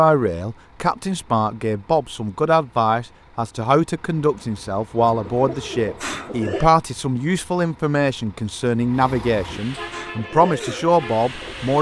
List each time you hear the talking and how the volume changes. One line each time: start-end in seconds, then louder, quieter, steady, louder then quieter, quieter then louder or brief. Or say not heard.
0.0-11.7 steady.